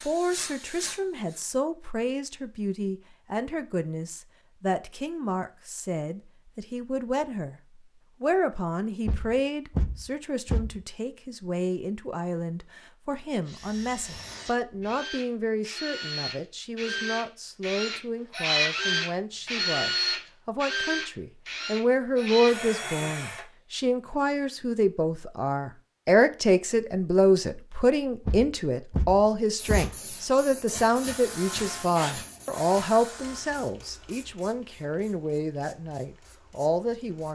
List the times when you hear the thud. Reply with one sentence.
The thud can be heard from 9.1 to 10.8 s and from 28.2 to 29.9 s.